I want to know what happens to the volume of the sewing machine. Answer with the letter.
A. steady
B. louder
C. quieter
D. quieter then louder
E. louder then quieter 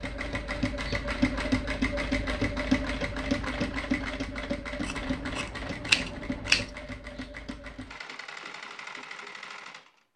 C.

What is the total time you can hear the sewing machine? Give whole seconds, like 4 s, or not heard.
10 s.